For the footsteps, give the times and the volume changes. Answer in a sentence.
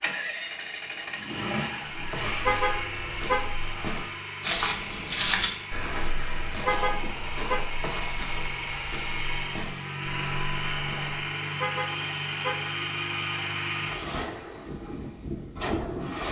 The footsteps can be heard from 1.9 to 11.2 s, getting louder then quieter.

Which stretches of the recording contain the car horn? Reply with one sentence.
You can hear the car horn from 2.5 to 3.5 s, from 6.7 to 7.6 s and from 11.6 to 12.7 s.